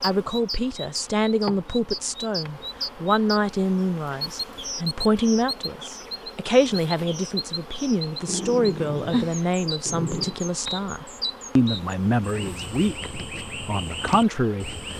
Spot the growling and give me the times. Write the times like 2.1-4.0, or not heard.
8.2-10.3.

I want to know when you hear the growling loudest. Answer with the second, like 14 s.
9 s.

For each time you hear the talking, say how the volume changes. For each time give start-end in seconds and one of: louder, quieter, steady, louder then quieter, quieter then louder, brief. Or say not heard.
0.0-14.8 steady.